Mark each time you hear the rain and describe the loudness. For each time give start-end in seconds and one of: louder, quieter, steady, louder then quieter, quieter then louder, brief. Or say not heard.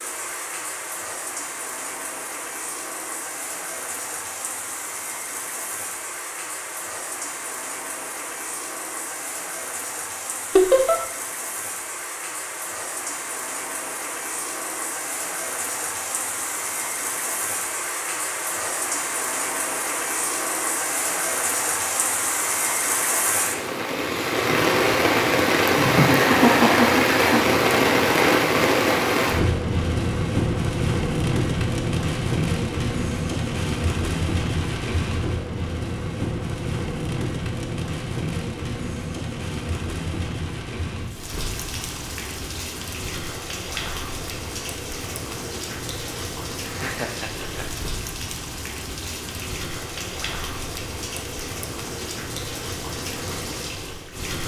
0.0-54.4 louder then quieter.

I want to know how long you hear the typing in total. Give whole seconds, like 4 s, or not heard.
not heard.